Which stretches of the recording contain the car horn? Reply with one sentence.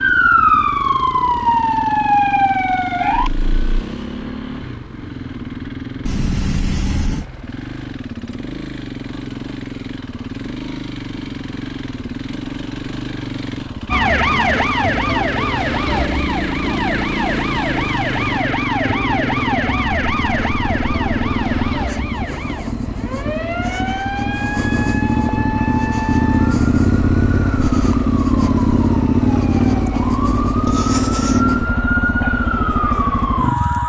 The car horn can be heard from 6.0 to 7.2 s.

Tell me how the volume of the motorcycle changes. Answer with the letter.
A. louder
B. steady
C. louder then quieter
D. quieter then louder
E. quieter
A.